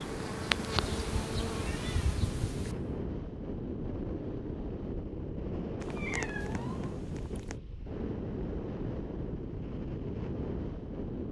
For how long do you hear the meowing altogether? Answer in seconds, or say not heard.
4 s.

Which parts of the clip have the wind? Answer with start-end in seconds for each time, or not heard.
0.0-11.2.